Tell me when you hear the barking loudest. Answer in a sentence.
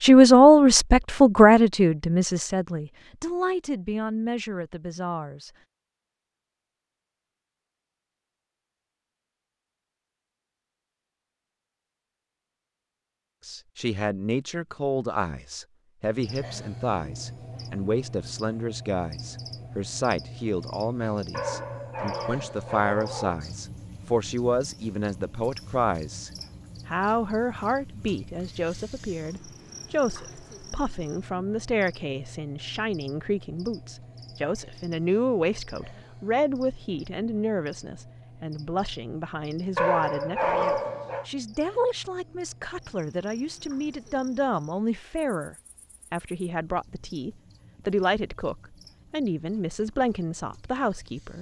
The volume of the barking peaks at 41 seconds.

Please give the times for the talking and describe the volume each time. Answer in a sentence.
The talking can be heard from 0.0 to 5.5 s, getting quieter; and from 13.4 to 51.3 s, at a steady volume.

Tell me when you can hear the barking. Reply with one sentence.
The barking can be heard from 21.3 to 23.4 s and from 39.8 to 41.2 s.